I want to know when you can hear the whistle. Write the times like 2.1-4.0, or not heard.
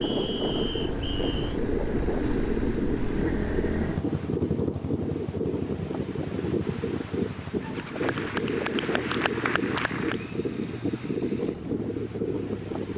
0.0-1.5.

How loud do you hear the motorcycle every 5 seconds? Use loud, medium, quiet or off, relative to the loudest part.
loud, medium, medium.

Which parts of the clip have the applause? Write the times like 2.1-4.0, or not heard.
7.8-10.3.